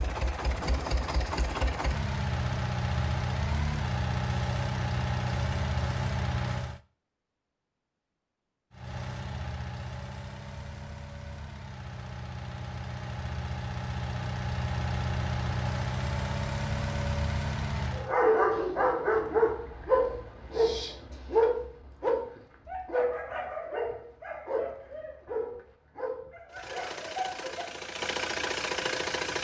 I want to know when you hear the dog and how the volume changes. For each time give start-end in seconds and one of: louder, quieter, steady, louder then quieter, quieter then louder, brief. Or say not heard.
17.9-27.9 quieter.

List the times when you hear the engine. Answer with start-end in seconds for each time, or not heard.
0.0-6.8, 8.7-18.1, 26.5-29.3.